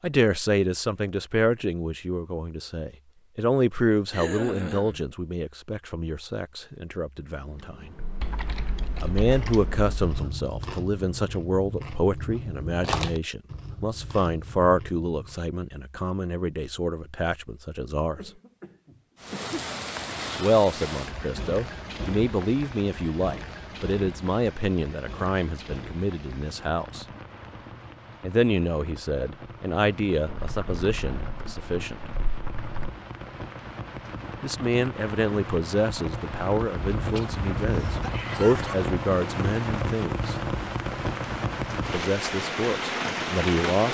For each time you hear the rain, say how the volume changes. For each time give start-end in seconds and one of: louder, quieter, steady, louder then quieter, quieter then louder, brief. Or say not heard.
19.1-43.8 quieter then louder.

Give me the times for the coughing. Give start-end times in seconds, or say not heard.
4.1-5.0, 18.1-19.6, 36.8-38.8.